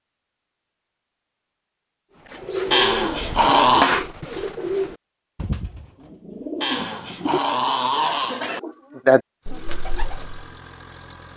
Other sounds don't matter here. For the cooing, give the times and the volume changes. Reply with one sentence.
The cooing can be heard from 2.3 to 10.4 s, getting quieter then louder.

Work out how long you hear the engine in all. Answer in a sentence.
The engine can be heard for 2 seconds in total.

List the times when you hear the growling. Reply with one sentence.
The growling can be heard from 2.7 to 4.0 s and from 6.6 to 8.6 s.